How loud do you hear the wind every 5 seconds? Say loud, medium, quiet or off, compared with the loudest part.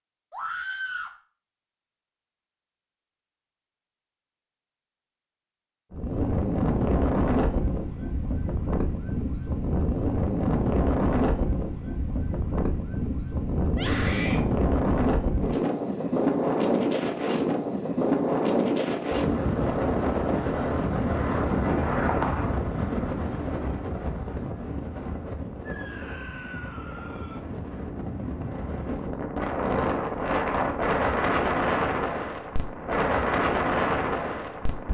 off, loud, loud, loud, loud, medium, loud.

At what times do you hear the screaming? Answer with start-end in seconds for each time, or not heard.
0.3-1.1, 13.7-14.4, 25.6-27.4.